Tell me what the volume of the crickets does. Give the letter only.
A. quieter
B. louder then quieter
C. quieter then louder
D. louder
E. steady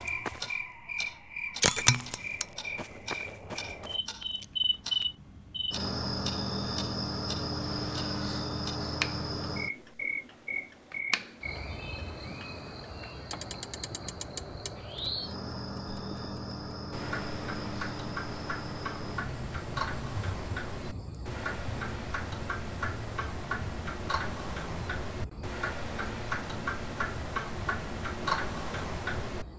A.